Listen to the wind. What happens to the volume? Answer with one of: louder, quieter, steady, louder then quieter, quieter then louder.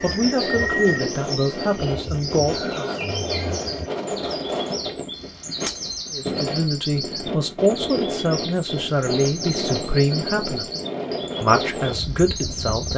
steady.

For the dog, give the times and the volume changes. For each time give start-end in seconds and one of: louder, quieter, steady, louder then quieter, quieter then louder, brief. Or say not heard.
not heard.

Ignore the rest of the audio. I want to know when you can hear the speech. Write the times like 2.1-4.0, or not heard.
0.0-2.9, 6.1-10.7, 11.4-12.9.